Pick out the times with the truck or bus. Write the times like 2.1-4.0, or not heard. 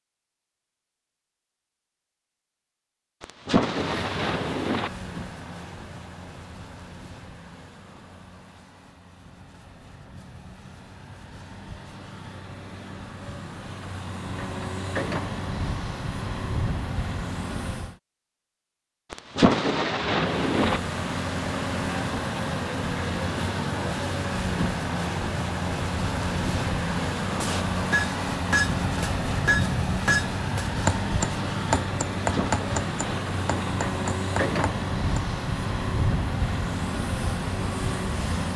3.8-18.0, 20.1-38.5.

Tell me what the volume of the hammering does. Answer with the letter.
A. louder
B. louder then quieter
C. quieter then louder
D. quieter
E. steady
D.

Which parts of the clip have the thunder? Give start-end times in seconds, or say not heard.
3.2-4.9, 19.1-20.8, 32.3-33.8.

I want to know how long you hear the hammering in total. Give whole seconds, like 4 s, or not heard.
8 s.